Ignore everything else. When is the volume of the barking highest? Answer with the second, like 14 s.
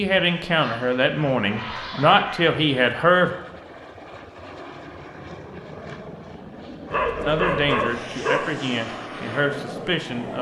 8 s.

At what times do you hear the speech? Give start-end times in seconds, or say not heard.
0.0-3.4, 7.2-10.3.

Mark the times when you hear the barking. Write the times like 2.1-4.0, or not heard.
0.6-2.5, 6.9-8.6.